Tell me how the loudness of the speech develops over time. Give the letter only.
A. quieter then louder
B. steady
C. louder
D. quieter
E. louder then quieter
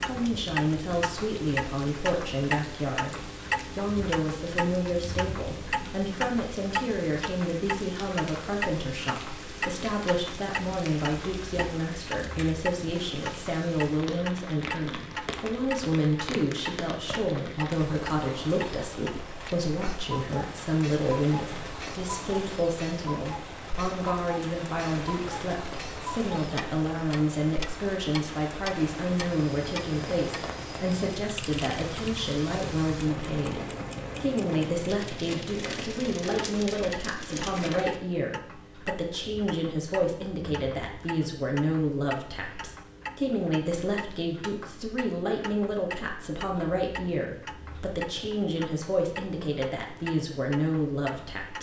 B.